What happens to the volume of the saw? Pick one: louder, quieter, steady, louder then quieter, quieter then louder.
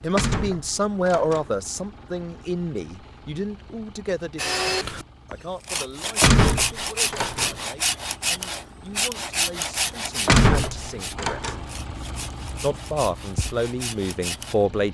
quieter.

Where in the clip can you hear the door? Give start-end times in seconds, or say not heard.
0.1-1.5, 6.2-7.5, 10.2-11.7.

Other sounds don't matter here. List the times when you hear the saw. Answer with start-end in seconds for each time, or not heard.
4.3-14.6.